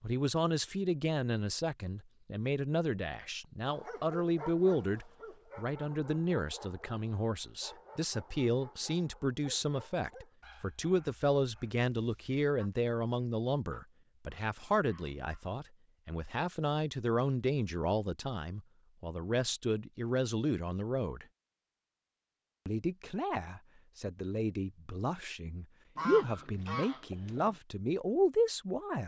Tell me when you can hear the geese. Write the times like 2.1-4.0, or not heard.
25.9-27.6.